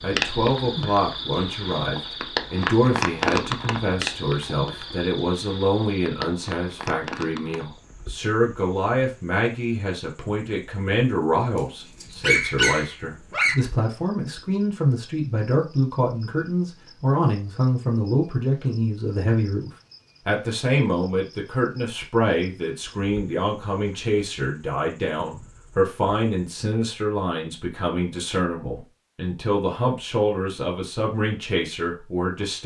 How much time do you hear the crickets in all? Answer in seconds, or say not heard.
27 s.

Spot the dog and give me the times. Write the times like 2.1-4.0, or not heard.
12.0-13.6.